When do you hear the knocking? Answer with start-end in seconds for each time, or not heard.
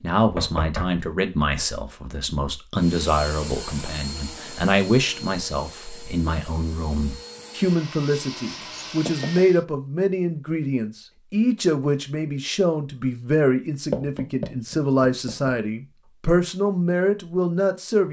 0.2-1.1, 8.4-9.4, 13.9-15.6.